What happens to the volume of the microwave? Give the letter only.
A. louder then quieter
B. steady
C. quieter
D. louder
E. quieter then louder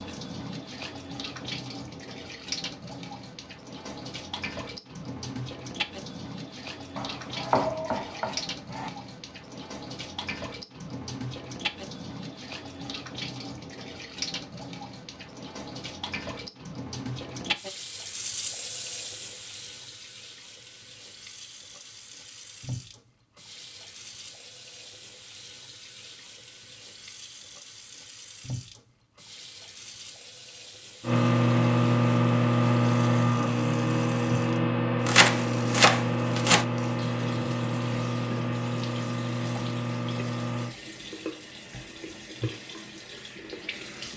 C.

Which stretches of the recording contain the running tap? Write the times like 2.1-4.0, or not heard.
0.0-44.1.